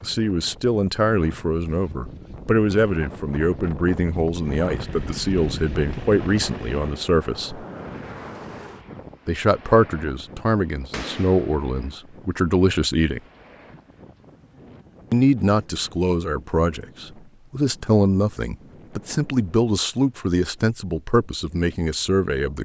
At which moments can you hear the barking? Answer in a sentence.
The barking can't be heard in this clip.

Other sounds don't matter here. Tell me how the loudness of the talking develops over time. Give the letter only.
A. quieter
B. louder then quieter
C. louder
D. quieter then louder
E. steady
E.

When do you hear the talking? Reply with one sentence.
The talking can be heard from 0.0 to 7.7 s, from 9.2 to 13.2 s and from 15.1 to 22.6 s.